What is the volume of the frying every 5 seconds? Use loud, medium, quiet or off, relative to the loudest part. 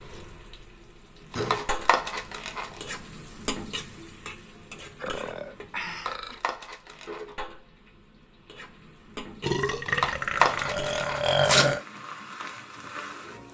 loud, medium, loud.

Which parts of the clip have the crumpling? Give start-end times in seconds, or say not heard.
1.3-2.8, 5.8-7.2, 9.8-11.7.